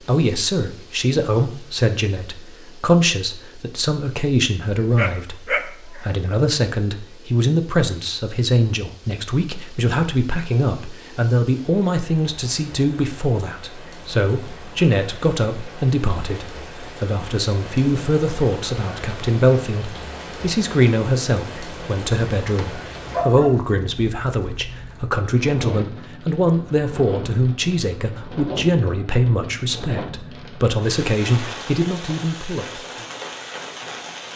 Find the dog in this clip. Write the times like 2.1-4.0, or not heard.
5.0-6.0, 22.4-23.6.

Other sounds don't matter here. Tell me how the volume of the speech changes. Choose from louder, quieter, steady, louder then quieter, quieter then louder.
steady.